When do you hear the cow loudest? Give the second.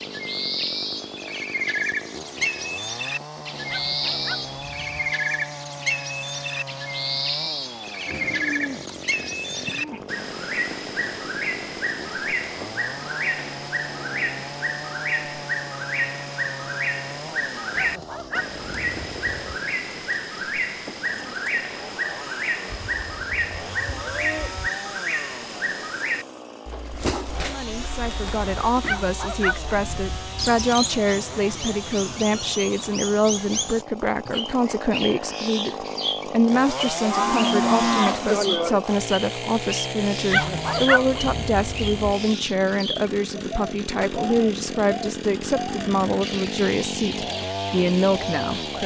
38 s.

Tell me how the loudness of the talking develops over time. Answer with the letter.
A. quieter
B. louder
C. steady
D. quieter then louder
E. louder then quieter
C.